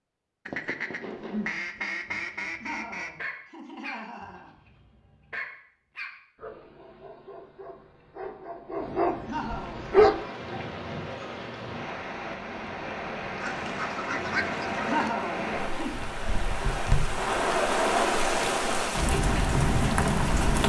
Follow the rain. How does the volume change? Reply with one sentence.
The volume of the rain goes up.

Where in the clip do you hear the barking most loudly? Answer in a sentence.
The volume of the barking peaks at 10 seconds.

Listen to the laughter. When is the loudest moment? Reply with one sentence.
The volume of the laughter peaks at 15 seconds.